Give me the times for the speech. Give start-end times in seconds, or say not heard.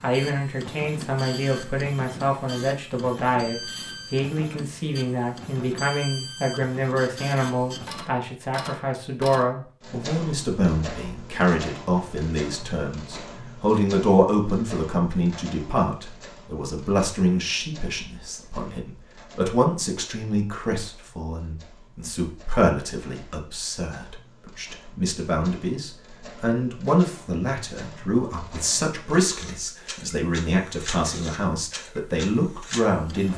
0.0-33.3.